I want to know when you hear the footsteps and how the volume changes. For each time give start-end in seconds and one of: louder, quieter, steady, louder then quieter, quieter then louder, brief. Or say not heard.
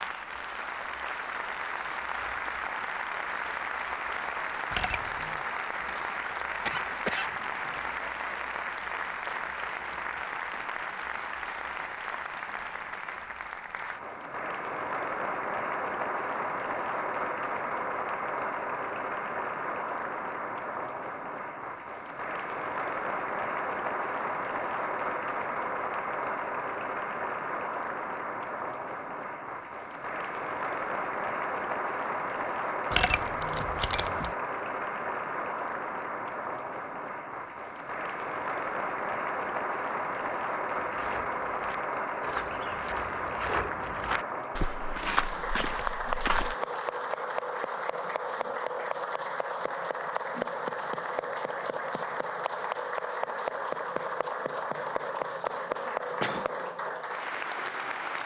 40.8-46.5 louder.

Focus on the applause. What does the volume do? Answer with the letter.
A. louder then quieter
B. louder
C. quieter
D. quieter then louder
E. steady
E.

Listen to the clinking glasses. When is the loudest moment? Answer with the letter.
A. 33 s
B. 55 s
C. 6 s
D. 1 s
A.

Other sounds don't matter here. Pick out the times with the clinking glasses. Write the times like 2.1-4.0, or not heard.
4.7-5.4, 32.9-34.3.